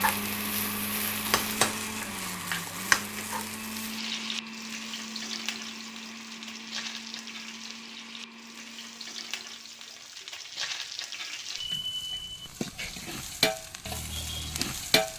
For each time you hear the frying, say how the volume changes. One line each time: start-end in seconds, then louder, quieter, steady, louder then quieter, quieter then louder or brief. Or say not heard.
0.0-15.1 quieter then louder.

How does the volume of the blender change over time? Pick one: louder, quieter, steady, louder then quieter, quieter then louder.
quieter.